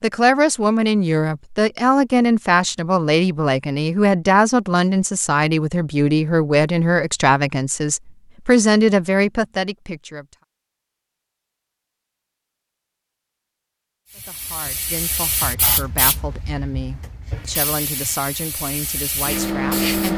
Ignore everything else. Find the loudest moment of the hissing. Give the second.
20 s.